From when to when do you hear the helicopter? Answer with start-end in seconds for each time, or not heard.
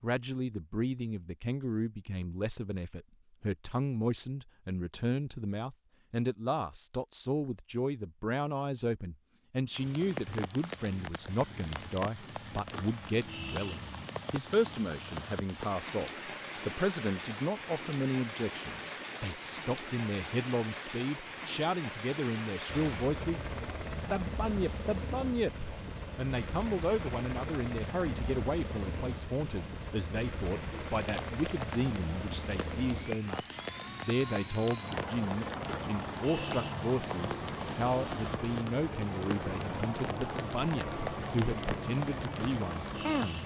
22.6-43.4.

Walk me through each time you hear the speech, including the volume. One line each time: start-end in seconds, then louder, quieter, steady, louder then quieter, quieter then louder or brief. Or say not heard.
0.0-23.5 steady
24.1-43.4 steady.